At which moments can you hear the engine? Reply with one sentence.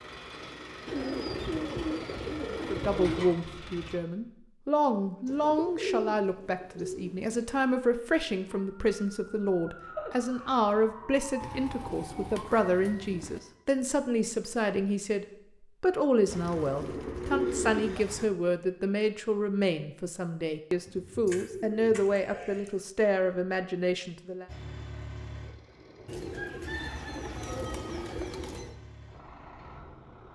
You can hear the engine from 0.0 to 4.0 s and from 24.4 to 30.3 s.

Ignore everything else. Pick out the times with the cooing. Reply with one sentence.
You can hear the cooing from 0.8 to 3.4 s, from 5.2 to 7.6 s, from 11.4 to 13.4 s, from 16.2 to 18.3 s, from 20.9 to 22.7 s and from 26.1 to 28.8 s.